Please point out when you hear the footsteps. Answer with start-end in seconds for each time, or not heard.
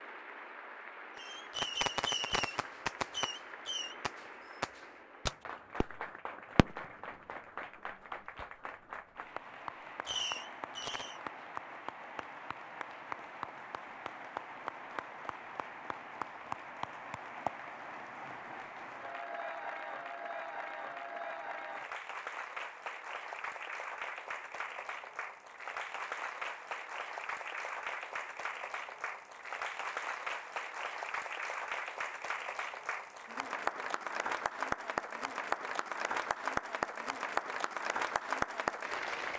not heard.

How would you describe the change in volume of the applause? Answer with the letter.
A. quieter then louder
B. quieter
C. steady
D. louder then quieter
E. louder
E.